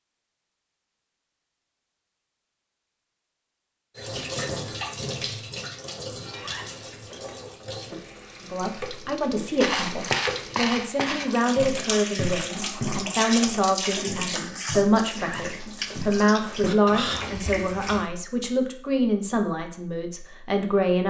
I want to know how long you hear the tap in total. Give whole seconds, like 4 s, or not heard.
14 s.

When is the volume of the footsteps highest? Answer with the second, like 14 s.
10 s.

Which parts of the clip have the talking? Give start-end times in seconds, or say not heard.
8.4-21.0.